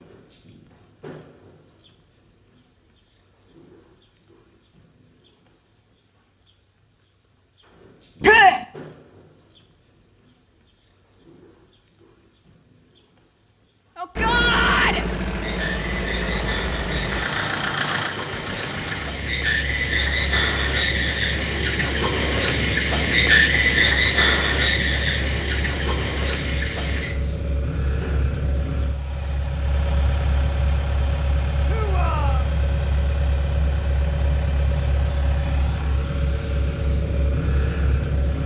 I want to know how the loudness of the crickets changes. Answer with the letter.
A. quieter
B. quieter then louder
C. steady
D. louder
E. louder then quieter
E.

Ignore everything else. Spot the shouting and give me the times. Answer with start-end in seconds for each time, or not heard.
8.2-8.6, 13.9-15.1, 31.6-32.5.